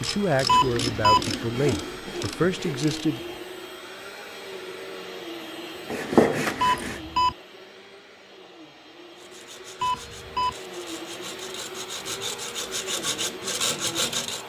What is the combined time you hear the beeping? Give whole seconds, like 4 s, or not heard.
2 s.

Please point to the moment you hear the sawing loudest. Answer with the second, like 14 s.
6 s.